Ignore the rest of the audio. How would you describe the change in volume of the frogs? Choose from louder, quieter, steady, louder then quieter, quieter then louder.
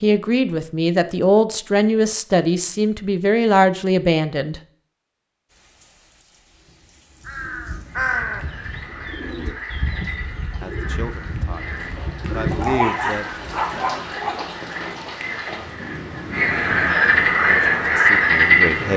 louder.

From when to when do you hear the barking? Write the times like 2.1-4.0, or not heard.
12.5-14.4.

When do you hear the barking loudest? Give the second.
13 s.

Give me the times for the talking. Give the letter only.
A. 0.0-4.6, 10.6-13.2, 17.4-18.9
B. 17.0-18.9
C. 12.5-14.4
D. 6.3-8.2
A.